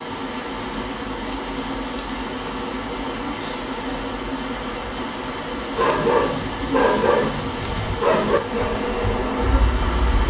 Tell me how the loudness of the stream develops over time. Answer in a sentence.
The volume of the stream stays about the same.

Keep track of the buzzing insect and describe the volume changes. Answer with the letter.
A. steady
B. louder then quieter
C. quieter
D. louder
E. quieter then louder
D.